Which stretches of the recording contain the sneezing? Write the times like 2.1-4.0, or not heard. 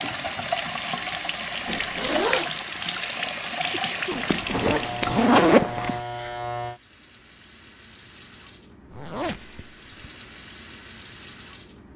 3.7-4.2.